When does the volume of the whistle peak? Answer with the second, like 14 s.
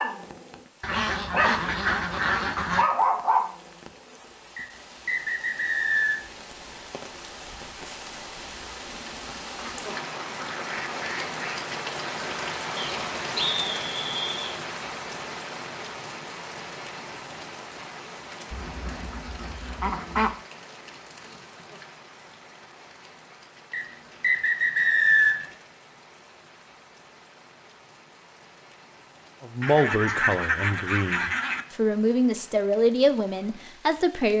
25 s.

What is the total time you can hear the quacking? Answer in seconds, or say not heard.
8 s.